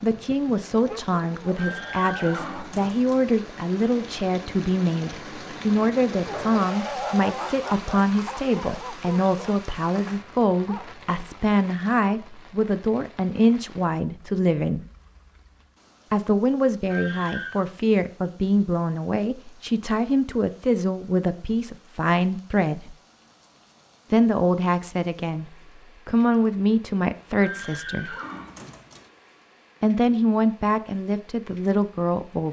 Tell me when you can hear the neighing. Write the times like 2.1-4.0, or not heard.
1.6-3.2, 16.9-17.6, 27.4-29.1.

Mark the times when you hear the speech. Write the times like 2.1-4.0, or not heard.
0.0-14.8, 16.1-22.9, 24.1-28.1, 29.8-32.4.